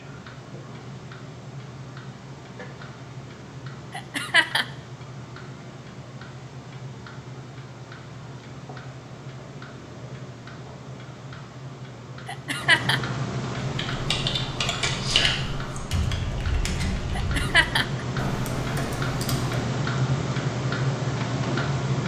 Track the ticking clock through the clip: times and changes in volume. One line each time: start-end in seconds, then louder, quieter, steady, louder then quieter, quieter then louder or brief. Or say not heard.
0.0-22.0 louder.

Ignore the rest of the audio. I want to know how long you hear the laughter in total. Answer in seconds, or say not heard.
2 s.